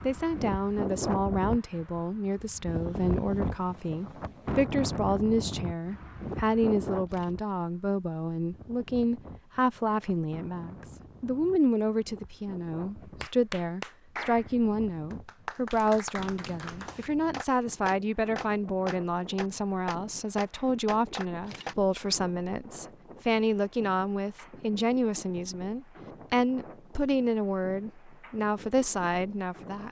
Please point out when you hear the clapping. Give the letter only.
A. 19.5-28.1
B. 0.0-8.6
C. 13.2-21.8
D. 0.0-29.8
C.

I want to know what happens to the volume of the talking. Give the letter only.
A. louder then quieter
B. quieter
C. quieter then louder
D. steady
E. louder
D.